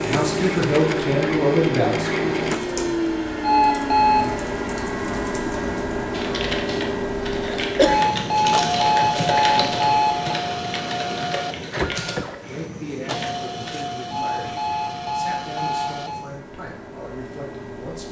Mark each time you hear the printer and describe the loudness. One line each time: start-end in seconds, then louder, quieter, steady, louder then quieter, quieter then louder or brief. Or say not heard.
0.0-18.0 quieter.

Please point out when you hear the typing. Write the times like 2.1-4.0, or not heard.
2.5-13.8.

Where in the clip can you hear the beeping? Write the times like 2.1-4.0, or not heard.
3.4-4.3, 7.8-10.3, 14.1-16.2.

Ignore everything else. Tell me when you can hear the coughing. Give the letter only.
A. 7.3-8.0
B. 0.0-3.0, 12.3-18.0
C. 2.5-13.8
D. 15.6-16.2
A.